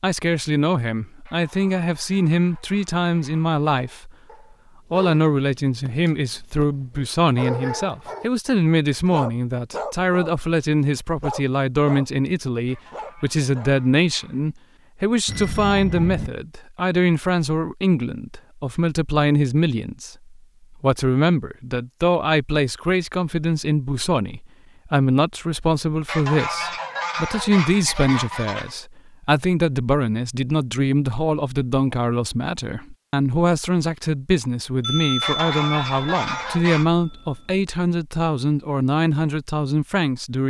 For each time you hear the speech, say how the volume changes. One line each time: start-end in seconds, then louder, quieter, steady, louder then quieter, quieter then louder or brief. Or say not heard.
0.0-4.2 steady
4.9-40.4 steady.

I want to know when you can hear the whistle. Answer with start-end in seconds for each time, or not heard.
not heard.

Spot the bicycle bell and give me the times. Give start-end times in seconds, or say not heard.
15.2-16.3, 34.8-37.5.